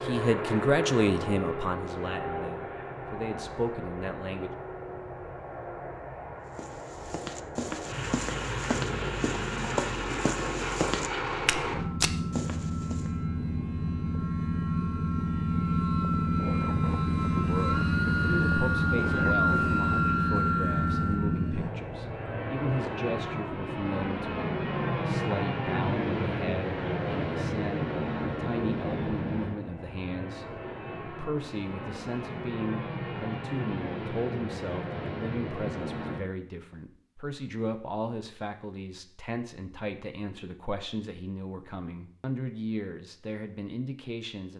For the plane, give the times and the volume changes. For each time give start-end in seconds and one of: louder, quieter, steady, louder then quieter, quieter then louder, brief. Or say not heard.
0.0-36.2 louder then quieter.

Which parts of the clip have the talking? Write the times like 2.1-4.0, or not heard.
0.0-4.5, 17.3-44.5.